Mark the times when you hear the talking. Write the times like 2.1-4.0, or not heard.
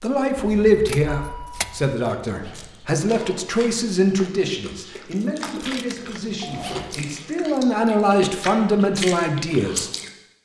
0.0-9.9.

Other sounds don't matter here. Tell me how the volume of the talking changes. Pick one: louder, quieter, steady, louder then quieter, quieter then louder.
quieter then louder.